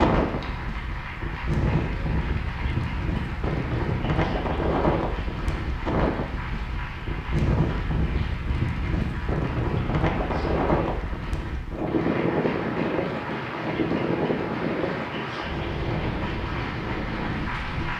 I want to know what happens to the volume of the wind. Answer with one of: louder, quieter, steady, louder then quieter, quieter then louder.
steady.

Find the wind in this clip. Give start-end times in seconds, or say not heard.
0.0-17.9.